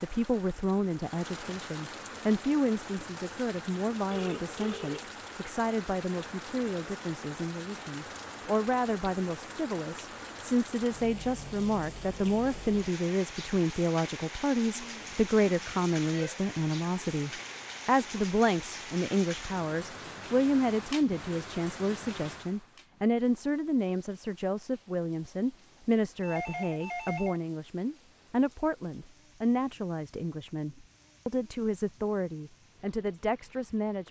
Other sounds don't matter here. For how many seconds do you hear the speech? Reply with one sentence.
The speech can be heard for 34 seconds in total.